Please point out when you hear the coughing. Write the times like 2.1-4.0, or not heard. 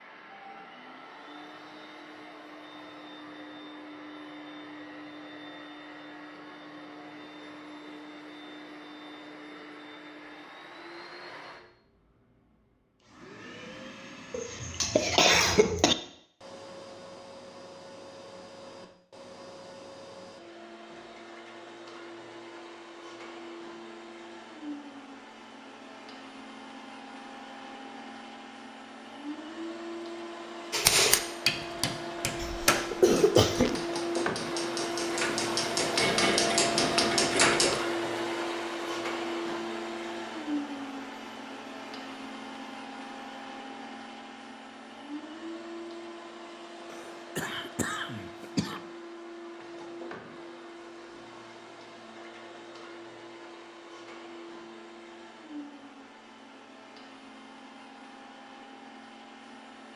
14.3-15.9, 32.4-33.9, 46.9-48.8.